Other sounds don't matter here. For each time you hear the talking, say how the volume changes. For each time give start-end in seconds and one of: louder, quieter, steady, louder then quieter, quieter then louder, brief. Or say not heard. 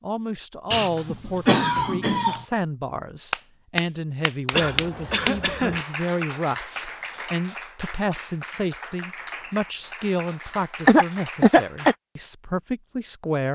0.0-13.5 steady.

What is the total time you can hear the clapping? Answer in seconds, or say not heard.
9 s.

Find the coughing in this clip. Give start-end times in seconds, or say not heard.
0.7-2.5, 4.5-5.8, 10.8-11.9.